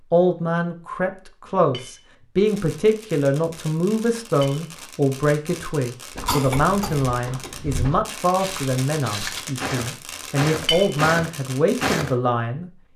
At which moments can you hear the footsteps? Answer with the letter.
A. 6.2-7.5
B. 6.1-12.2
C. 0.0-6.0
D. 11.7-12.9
B.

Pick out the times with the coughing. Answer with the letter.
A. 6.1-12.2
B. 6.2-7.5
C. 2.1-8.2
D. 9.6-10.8
B.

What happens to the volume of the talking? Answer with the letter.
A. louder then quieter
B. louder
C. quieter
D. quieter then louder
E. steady
E.